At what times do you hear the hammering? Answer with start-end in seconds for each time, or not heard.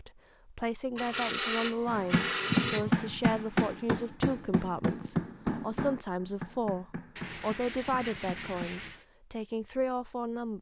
1.9-8.7.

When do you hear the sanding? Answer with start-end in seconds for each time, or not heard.
0.9-3.0, 7.2-9.1.